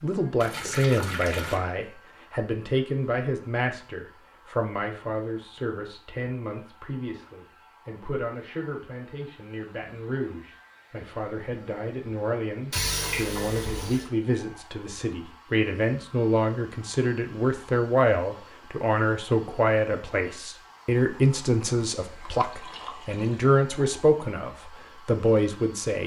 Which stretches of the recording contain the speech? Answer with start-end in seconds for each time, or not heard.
0.0-26.0.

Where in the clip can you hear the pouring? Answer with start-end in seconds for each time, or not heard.
0.4-1.6, 12.7-14.1, 21.9-23.5.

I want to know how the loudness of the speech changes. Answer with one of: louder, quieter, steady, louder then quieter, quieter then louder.
quieter then louder.